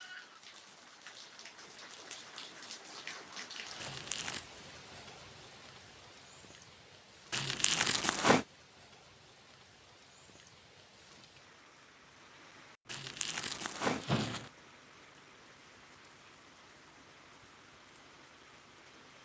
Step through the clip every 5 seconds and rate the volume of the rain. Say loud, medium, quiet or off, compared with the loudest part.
loud, medium, medium, medium.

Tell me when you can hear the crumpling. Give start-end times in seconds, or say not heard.
3.8-4.4, 7.3-8.4, 12.8-14.5.